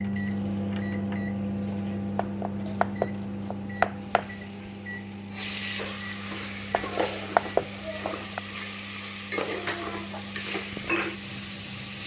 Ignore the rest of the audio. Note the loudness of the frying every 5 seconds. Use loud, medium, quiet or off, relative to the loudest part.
quiet, loud, loud.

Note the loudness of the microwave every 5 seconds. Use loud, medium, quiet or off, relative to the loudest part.
loud, medium, medium.